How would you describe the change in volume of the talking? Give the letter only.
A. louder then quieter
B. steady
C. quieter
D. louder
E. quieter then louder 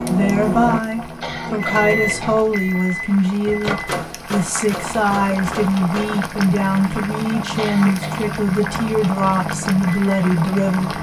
B.